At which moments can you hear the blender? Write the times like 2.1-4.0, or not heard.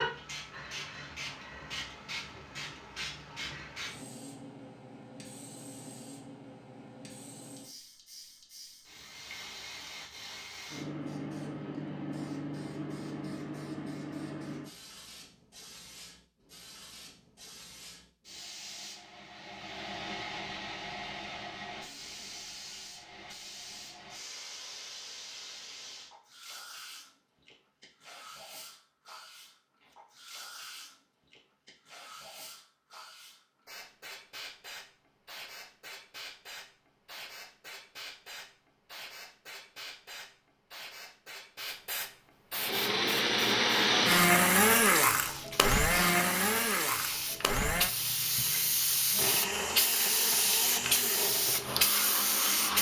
42.5-52.7.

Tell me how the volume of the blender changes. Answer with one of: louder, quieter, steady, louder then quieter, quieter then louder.
quieter.